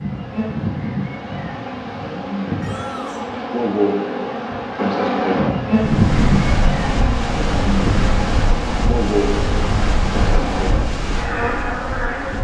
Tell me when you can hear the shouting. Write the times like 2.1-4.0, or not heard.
2.6-3.3.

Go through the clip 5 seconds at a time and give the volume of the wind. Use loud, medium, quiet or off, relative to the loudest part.
off, loud, loud.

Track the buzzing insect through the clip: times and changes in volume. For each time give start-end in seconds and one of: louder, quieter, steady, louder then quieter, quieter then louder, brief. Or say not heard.
0.0-12.3 louder then quieter.